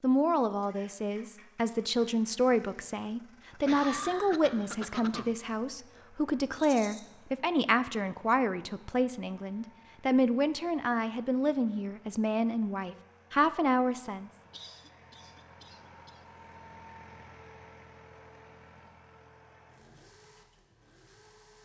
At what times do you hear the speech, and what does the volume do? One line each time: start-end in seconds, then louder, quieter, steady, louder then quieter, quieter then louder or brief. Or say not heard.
0.0-14.3 steady.